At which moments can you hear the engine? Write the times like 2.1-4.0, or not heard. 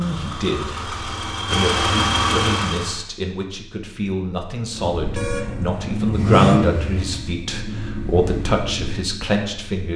0.0-3.0, 4.7-9.8.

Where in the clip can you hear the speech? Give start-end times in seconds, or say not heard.
0.0-9.9.